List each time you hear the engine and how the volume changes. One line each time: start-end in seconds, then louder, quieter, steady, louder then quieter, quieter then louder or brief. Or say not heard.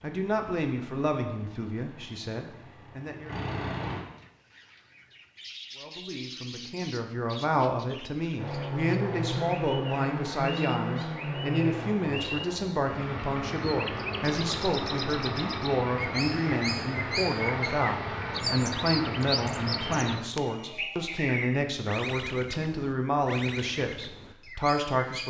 0.0-4.0 louder
8.3-20.2 steady.